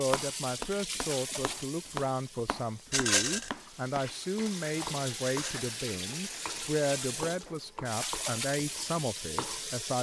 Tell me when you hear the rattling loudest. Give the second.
3 s.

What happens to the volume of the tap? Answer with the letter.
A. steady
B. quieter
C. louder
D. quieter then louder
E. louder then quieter
D.